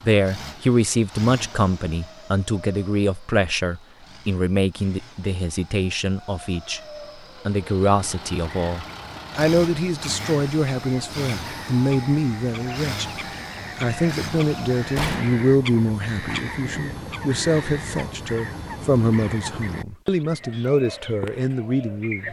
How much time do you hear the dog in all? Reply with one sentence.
You can't hear the dog here.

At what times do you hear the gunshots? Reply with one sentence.
The gunshots can be heard from 14.9 to 15.5 s.